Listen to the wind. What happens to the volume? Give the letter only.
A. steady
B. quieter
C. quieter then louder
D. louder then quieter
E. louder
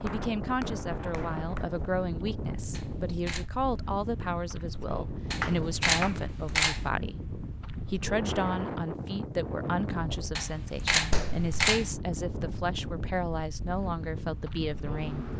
A.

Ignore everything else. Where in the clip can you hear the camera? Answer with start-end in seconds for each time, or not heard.
2.7-3.5, 5.3-6.8, 10.3-11.8.